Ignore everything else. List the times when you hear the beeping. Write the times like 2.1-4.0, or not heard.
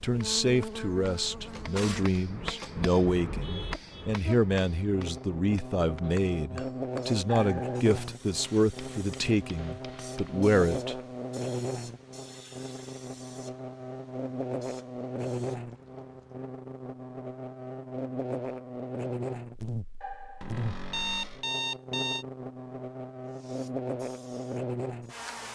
7.2-7.8, 20.0-22.2.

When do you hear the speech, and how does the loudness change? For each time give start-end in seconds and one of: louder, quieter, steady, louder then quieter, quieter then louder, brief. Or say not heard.
0.0-10.9 steady.